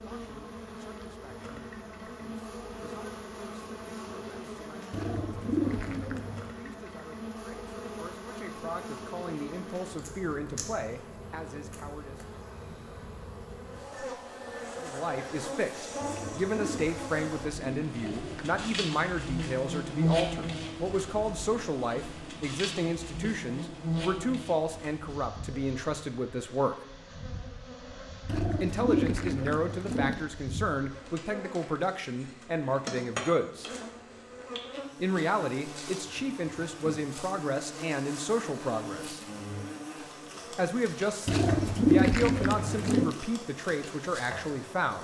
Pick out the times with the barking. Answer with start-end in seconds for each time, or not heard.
not heard.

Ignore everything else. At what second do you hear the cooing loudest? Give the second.
42 s.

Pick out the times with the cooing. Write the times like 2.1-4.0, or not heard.
4.9-6.5, 16.0-18.6, 28.2-30.2, 41.2-43.1.